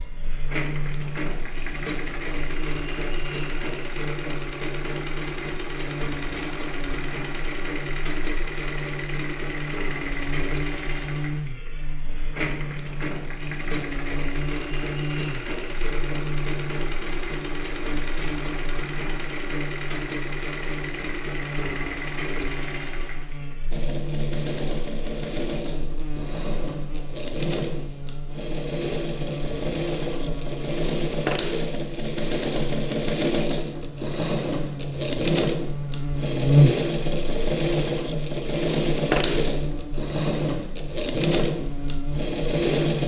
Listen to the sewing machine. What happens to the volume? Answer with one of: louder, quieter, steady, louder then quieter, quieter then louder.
louder.